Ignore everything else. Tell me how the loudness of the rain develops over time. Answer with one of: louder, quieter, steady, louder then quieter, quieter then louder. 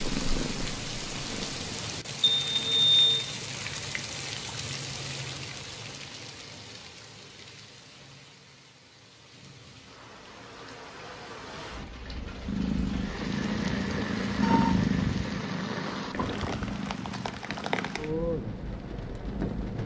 quieter then louder.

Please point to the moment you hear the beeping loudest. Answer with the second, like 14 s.
3 s.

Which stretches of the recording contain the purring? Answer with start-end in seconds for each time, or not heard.
0.0-1.6, 12.0-19.8.